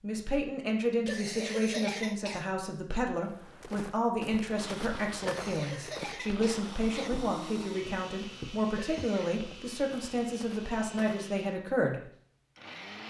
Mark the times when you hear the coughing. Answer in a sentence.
The coughing can be heard from 1.1 to 2.5 s, from 5.2 to 7.1 s and from 8.8 to 9.4 s.